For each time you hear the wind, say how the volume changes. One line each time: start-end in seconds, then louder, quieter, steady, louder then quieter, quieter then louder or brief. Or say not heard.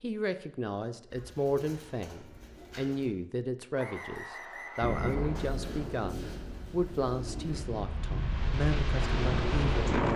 4.8-10.1 quieter then louder.